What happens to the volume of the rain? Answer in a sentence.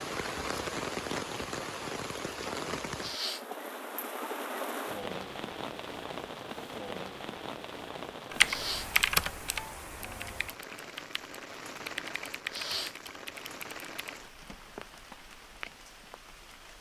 The volume of the rain goes down.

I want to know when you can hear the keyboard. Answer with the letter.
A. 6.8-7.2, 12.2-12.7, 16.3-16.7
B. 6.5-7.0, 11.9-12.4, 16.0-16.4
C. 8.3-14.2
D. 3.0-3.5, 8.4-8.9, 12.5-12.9
C.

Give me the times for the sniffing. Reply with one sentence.
You can hear the sniffing from 3.0 to 3.5 s, from 8.4 to 8.9 s and from 12.5 to 12.9 s.